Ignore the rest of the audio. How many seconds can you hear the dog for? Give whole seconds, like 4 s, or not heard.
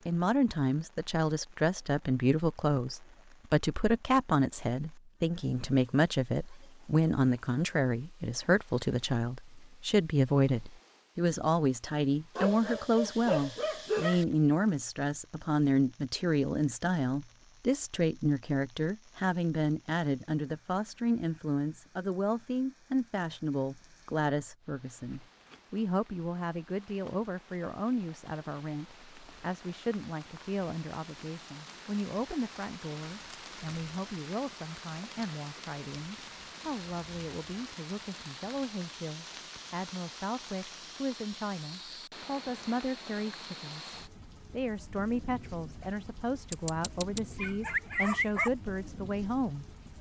4 s.